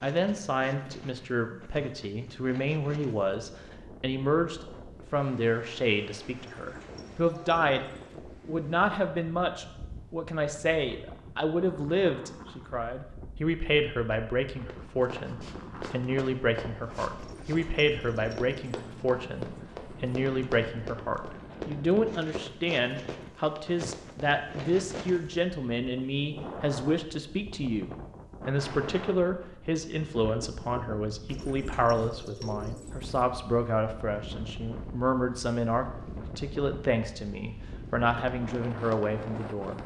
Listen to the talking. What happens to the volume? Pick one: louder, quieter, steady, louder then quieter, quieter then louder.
steady.